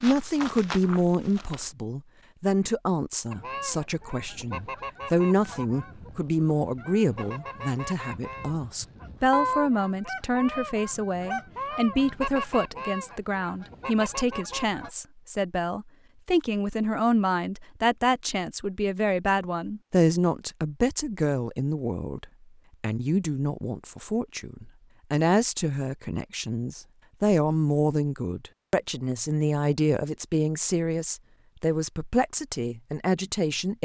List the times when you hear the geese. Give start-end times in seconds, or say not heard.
3.3-14.9.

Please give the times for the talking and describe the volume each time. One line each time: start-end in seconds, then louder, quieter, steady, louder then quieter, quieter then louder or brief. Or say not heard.
0.0-33.8 steady.